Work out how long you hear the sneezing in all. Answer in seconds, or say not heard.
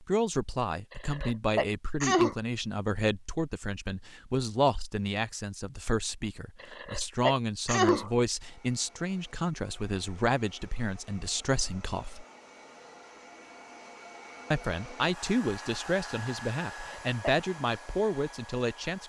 4 s.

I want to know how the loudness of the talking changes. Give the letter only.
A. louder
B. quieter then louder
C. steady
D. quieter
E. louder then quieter
C.